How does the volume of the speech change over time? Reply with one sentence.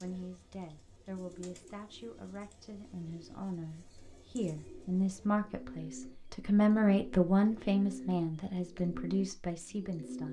The volume of the speech goes up, then down.